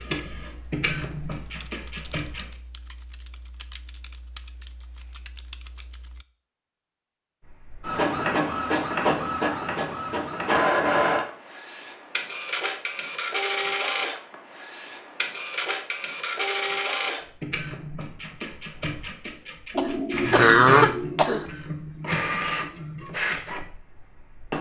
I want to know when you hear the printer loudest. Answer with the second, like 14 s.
11 s.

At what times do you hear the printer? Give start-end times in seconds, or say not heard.
0.0-2.5, 7.5-24.5.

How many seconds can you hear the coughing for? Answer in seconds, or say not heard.
2 s.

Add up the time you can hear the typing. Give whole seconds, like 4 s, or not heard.
6 s.